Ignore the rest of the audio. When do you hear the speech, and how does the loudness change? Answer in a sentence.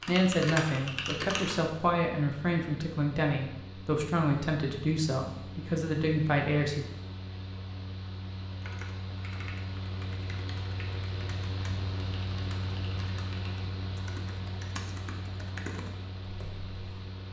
You can hear the speech from 0.1 to 6.8 s, at a steady volume.